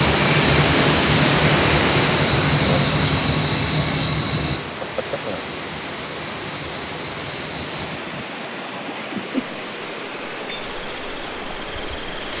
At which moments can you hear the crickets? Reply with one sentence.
You can hear the crickets from 0.0 to 12.3 s.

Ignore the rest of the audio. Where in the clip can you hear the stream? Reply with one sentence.
The stream can be heard from 0.0 to 12.3 s.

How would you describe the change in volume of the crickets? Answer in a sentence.
The loudness of the crickets goes down.